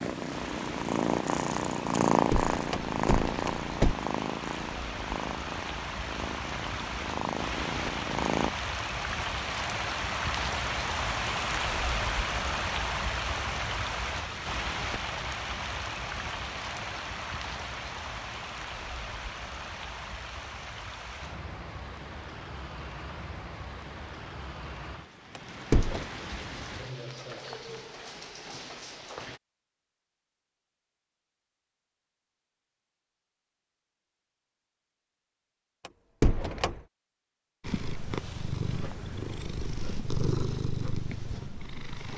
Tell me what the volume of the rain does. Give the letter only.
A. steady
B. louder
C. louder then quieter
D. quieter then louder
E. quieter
C.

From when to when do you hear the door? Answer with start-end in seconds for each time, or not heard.
2.3-4.0, 25.4-26.1, 35.9-36.8.